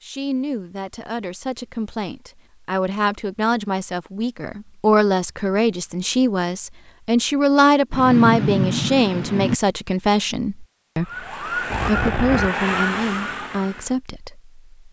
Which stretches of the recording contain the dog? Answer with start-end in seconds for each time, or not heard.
not heard.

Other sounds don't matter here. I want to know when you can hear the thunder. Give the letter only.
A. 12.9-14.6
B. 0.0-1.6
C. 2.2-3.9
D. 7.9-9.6
D.